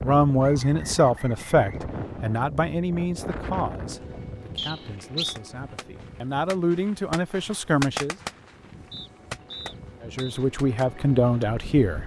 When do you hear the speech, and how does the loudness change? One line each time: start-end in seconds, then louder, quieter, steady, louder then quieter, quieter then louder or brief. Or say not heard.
0.0-8.2 quieter then louder
10.0-12.0 brief.